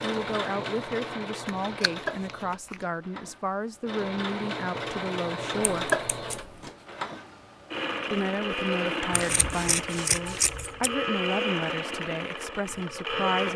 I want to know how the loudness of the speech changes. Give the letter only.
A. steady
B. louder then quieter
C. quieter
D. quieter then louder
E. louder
A.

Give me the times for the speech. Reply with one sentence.
You can hear the speech from 0.0 to 5.9 s and from 8.1 to 13.5 s.